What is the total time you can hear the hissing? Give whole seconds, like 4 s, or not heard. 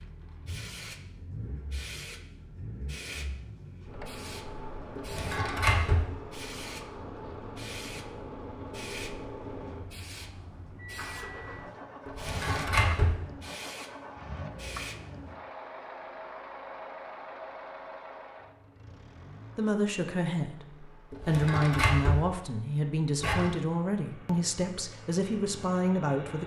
15 s.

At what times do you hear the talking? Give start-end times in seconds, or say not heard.
19.6-26.4.